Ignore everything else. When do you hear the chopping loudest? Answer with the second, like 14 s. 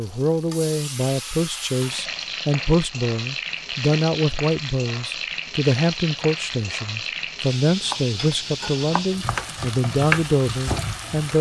10 s.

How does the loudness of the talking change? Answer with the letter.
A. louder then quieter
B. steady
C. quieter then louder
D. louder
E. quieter
B.